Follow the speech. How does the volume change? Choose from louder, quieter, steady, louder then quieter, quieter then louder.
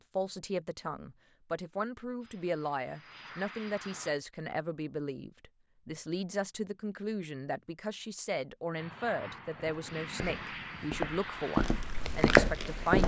steady.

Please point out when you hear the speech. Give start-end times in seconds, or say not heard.
0.1-13.0.